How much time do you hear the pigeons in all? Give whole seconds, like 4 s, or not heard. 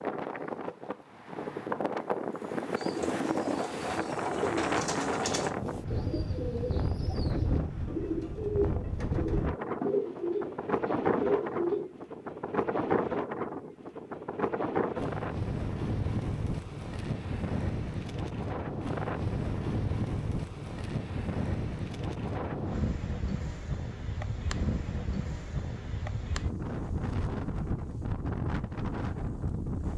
9 s.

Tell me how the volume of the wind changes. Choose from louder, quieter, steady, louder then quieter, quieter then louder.
steady.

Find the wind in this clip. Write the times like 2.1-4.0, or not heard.
0.0-29.9.